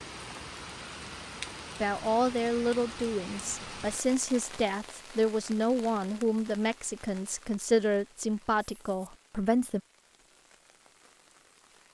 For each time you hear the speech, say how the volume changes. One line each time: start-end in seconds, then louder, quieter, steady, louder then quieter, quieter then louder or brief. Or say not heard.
1.8-9.8 steady.